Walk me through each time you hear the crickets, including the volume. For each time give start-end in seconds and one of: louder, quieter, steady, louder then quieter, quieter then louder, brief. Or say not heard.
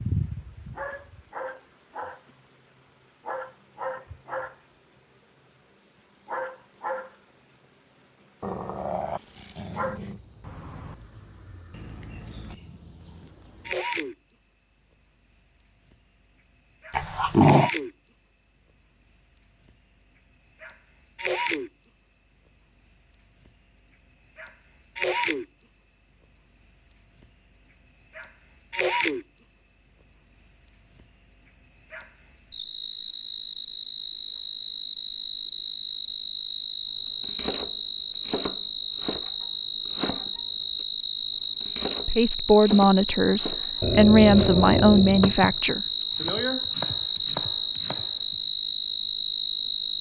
0.0-49.9 louder.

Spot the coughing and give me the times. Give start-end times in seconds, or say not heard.
not heard.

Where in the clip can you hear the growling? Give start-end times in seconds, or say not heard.
8.4-10.2, 16.9-17.7, 43.8-45.4.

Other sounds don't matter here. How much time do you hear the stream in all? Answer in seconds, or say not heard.
not heard.